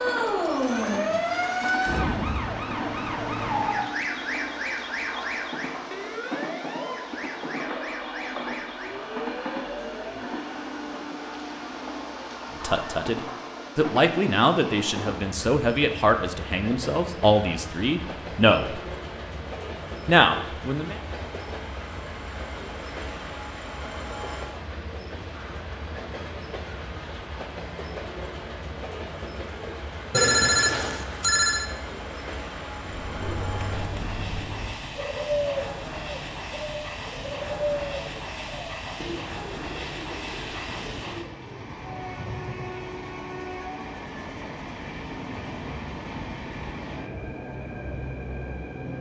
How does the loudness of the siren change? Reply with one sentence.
The loudness of the siren goes down.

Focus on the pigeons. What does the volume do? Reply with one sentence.
The loudness of the pigeons goes up, then down.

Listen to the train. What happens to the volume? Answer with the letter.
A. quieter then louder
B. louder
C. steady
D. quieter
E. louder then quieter
C.